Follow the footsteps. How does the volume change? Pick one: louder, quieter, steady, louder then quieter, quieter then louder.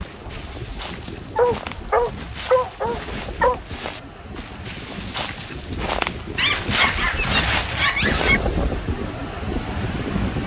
louder.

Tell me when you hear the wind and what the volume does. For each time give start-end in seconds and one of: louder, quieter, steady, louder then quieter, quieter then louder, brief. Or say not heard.
0.0-10.4 louder.